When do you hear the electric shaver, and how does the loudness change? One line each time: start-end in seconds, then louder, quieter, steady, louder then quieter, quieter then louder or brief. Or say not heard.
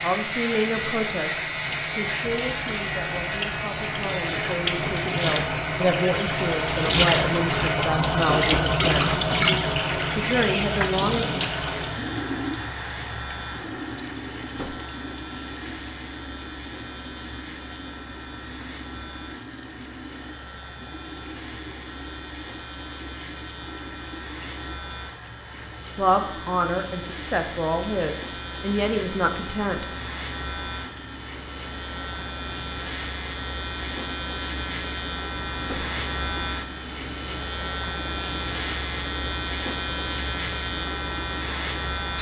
0.0-42.1 quieter then louder.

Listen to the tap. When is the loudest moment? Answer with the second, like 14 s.
9 s.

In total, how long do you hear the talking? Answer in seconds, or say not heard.
14 s.